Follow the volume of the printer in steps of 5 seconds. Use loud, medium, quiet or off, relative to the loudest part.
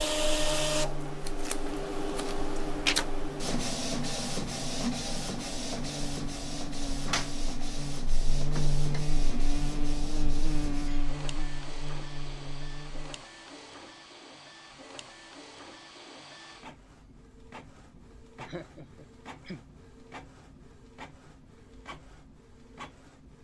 loud, medium, quiet, quiet, quiet.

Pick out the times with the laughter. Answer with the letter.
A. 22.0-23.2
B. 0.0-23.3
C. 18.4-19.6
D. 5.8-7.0
C.